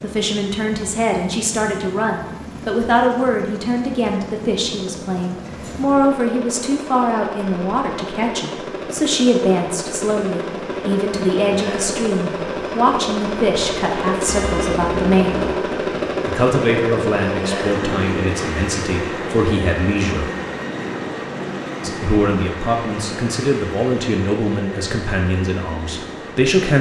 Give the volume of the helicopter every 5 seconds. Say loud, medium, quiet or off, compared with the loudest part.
medium, medium, loud, loud, medium, medium.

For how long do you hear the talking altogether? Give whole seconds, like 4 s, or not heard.
24 s.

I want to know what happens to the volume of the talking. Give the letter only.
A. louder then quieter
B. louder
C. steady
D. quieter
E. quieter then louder
C.